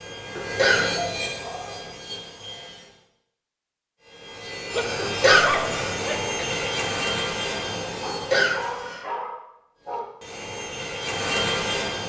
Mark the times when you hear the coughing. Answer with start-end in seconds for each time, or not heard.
0.3-1.0, 5.0-6.5, 8.1-9.1.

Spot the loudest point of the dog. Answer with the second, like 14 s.
5 s.